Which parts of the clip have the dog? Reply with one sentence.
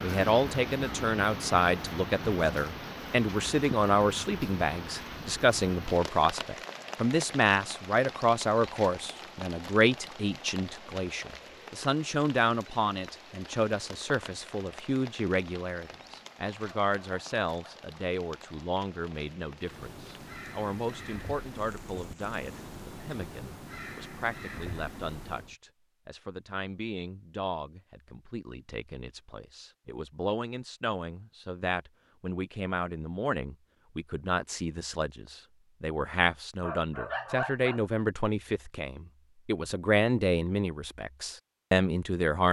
You can hear the dog from 16.6 to 17.9 s and from 36.6 to 37.9 s.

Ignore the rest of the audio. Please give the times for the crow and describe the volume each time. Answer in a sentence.
The crow can be heard from 19.6 to 25.6 s, at a steady volume.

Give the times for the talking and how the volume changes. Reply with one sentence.
You can hear the talking from 0.0 to 42.4 s, getting quieter then louder.